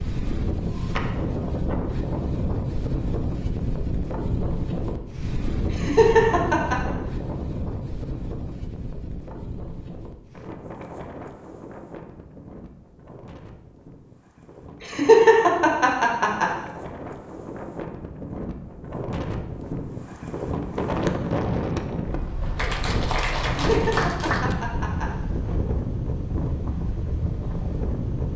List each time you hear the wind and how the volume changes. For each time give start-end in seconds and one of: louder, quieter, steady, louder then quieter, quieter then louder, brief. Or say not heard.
0.0-28.3 quieter then louder.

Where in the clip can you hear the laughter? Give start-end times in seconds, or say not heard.
5.7-6.8, 14.8-16.5, 23.6-25.1.